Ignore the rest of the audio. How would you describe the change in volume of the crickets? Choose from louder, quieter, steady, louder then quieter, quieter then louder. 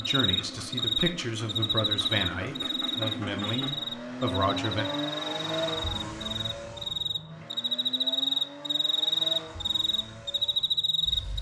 quieter then louder.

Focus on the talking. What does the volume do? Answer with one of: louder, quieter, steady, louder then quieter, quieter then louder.
steady.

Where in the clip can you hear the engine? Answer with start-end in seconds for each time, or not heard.
0.0-11.3.